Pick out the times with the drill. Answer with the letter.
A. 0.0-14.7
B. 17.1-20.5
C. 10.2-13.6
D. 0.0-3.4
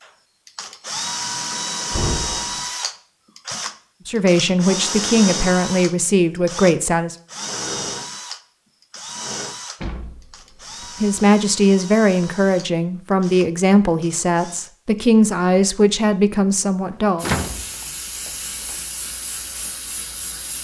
A.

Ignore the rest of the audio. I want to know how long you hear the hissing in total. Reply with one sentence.
You can hear the hissing for 3 seconds altogether.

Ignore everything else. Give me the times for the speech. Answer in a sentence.
The speech can be heard from 4.0 to 7.2 s and from 11.0 to 17.2 s.